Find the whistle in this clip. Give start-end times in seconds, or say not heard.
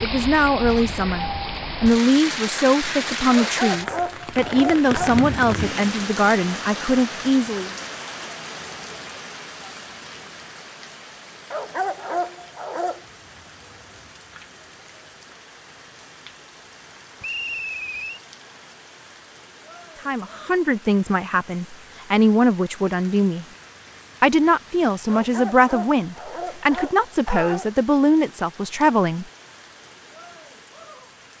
17.2-18.2.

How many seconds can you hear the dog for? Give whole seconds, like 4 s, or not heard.
6 s.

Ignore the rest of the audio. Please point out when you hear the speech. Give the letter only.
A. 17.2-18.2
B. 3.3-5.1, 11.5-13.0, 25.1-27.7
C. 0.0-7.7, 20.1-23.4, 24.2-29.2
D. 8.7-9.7
C.